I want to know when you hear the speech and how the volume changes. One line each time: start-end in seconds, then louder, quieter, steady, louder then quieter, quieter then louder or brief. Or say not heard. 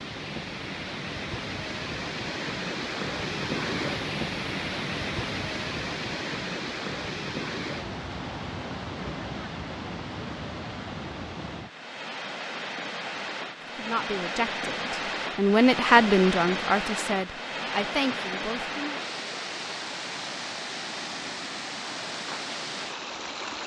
13.8-19.0 louder then quieter.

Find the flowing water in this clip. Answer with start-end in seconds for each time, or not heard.
0.0-23.6.